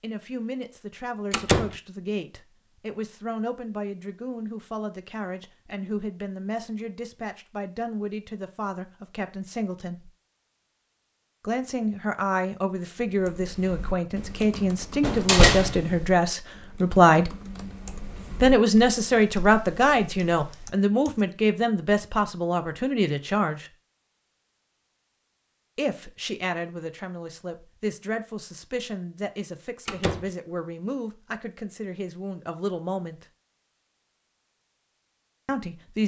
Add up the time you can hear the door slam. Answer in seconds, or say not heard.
2 s.